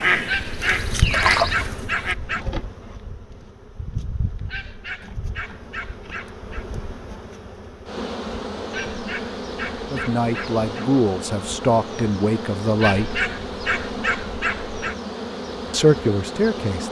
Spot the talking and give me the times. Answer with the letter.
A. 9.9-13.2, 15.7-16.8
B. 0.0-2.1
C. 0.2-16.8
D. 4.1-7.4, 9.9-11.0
A.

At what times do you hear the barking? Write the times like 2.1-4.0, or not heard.
0.2-2.5, 4.5-6.7, 8.7-10.9, 12.8-14.9.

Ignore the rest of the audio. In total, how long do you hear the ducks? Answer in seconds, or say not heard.
2 s.